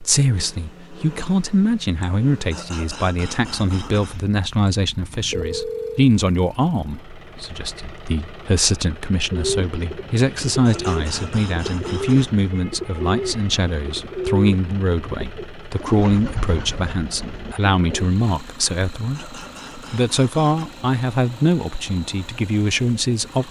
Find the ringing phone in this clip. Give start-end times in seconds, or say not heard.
5.3-6.1, 15.6-16.2.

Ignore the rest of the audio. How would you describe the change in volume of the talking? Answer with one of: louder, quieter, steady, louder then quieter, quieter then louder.
steady.